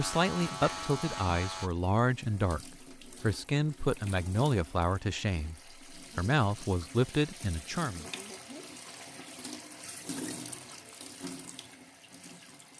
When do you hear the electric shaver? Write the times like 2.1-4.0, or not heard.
0.0-1.7.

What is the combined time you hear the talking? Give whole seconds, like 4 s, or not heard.
8 s.